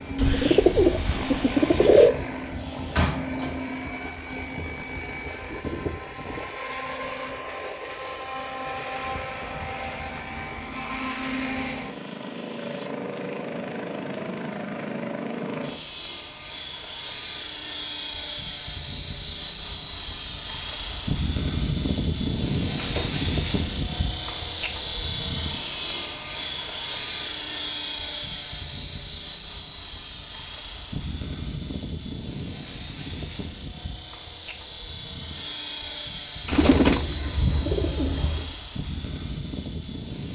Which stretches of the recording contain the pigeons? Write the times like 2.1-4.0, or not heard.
0.1-2.1, 36.5-38.5.